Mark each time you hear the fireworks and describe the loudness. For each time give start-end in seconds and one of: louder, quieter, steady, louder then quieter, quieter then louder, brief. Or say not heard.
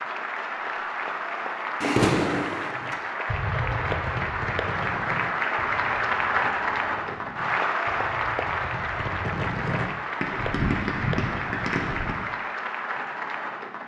1.8-12.4 quieter then louder.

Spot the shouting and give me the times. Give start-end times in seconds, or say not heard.
not heard.